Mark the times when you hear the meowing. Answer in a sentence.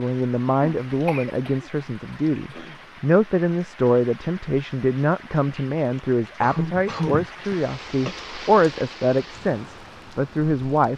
You can't hear the meowing here.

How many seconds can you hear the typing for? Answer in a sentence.
The typing can't be heard in this clip.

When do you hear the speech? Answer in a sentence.
You can hear the speech from 0.0 to 10.9 s.